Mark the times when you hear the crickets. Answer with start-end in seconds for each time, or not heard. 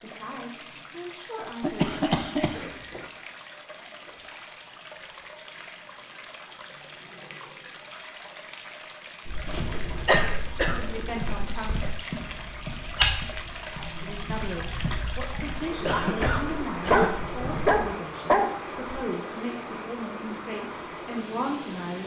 not heard.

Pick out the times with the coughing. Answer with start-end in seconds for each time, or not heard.
1.6-3.1, 9.4-11.3, 15.8-17.2.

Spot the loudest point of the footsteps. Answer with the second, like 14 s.
13 s.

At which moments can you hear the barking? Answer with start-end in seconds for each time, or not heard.
16.9-18.5.